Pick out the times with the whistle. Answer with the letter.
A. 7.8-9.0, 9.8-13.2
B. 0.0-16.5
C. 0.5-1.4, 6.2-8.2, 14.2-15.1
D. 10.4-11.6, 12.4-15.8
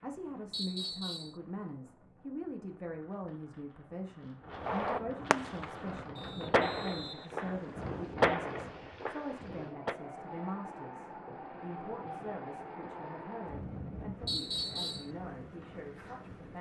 C.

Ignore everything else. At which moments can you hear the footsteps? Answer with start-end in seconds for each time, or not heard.
not heard.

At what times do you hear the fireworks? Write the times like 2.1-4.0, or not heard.
4.5-5.7, 6.5-9.9.